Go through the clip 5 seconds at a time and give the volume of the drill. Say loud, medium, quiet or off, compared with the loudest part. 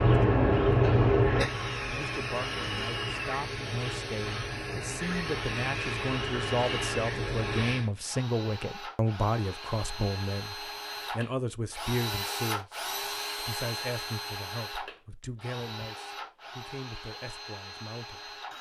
loud, loud, loud, medium.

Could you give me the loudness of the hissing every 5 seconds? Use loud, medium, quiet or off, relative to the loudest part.
loud, medium, off, off.